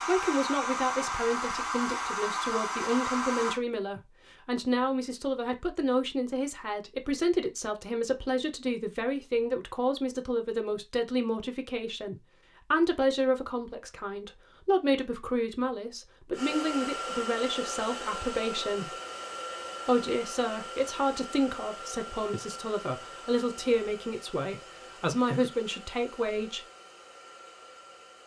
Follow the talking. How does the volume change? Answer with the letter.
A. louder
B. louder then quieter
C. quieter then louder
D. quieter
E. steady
E.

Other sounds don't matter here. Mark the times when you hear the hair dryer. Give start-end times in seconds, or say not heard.
0.0-3.6, 16.3-28.2.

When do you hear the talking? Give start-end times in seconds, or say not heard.
0.1-18.9, 19.9-26.6.